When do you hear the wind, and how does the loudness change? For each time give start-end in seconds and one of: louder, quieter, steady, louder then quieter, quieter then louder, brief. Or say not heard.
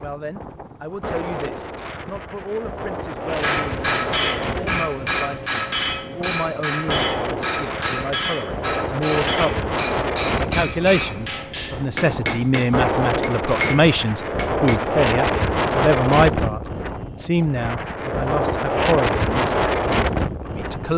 0.0-20.9 louder.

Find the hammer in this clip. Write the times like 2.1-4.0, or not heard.
3.3-14.8.